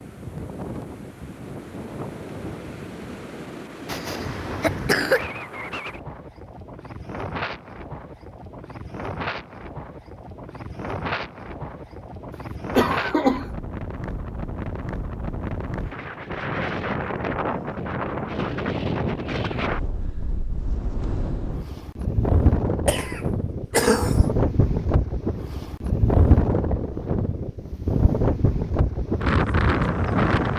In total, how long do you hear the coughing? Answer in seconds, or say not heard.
4 s.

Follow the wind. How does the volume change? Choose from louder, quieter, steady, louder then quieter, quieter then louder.
louder.